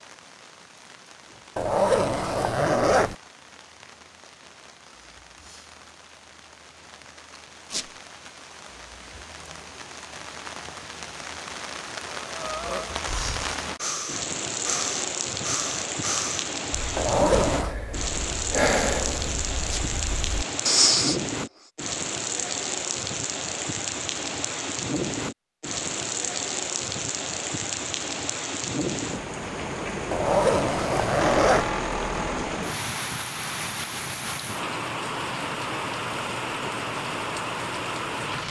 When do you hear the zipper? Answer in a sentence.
The zipper can be heard from 1.6 to 3.1 s, from 16.9 to 17.8 s and from 30.1 to 31.7 s.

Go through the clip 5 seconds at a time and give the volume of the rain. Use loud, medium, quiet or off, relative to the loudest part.
quiet, quiet, loud, loud, loud, loud, loud, loud.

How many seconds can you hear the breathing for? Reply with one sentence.
You can hear the breathing for 9 seconds altogether.